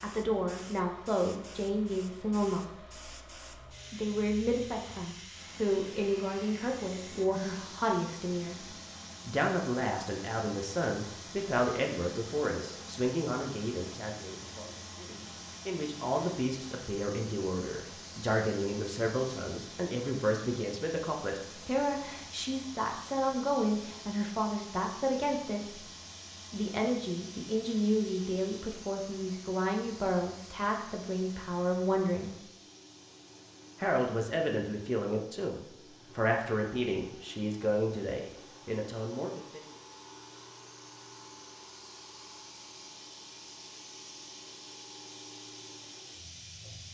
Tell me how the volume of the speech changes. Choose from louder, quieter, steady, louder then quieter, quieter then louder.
steady.